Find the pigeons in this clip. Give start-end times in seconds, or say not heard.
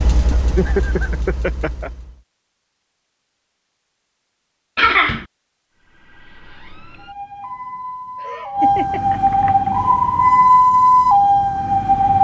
not heard.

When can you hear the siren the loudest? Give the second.
11 s.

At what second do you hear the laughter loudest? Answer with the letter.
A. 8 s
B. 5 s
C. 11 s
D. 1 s
B.